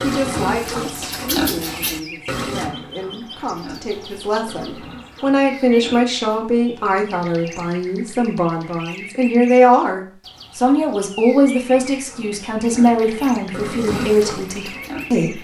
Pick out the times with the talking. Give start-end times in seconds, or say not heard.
0.0-15.3.